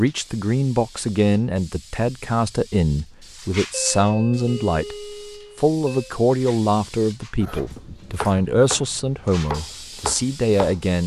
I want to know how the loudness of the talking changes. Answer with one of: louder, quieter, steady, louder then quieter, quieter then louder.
steady.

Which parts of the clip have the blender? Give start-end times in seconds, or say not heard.
not heard.